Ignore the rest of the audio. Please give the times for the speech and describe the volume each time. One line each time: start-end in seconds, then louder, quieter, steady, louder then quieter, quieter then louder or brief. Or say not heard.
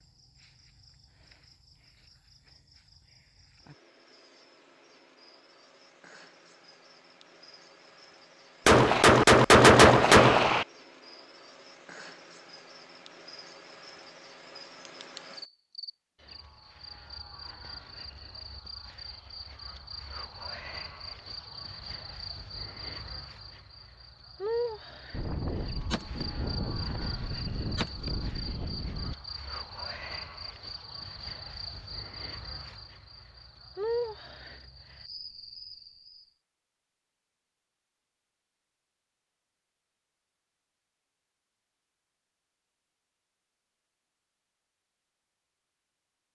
not heard.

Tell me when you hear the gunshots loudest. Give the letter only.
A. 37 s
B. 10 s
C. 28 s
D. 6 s
B.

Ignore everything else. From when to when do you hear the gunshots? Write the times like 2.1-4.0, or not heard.
8.7-10.7, 25.1-29.1.